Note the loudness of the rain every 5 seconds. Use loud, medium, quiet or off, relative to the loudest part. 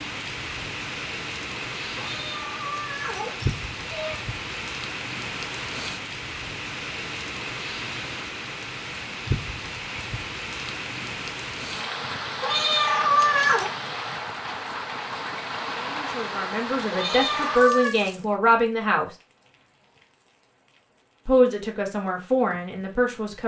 loud, loud, loud, loud, quiet.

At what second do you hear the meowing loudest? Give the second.
13 s.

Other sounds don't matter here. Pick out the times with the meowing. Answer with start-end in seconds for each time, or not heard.
1.9-4.2, 12.4-13.7, 16.9-17.9.